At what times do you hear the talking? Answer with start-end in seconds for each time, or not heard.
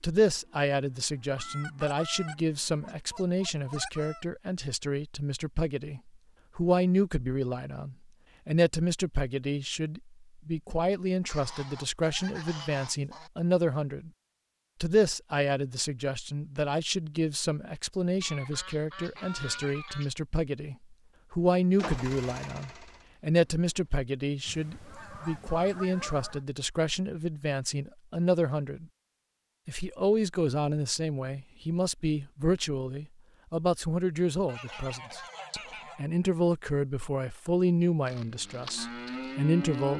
0.0-14.1, 14.8-28.9, 29.6-39.9.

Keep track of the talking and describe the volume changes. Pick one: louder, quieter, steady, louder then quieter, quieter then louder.
steady.